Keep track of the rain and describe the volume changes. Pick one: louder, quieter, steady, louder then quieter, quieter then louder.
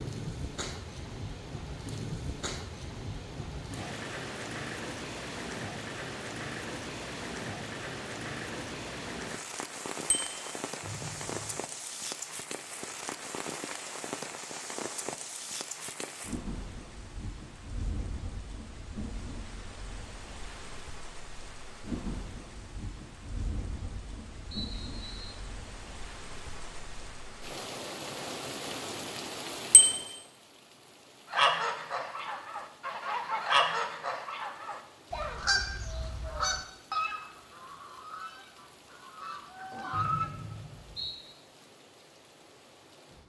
quieter.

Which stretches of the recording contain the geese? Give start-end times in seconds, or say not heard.
31.3-40.3.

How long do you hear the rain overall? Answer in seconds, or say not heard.
43 s.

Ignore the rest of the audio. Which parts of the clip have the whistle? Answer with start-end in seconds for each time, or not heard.
10.8-11.7, 24.5-25.4, 39.9-41.1.